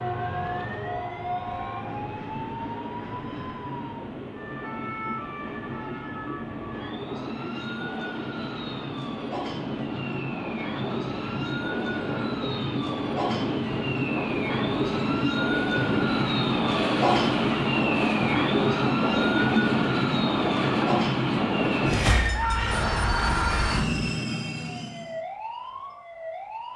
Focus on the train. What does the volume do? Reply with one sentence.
The volume of the train goes up.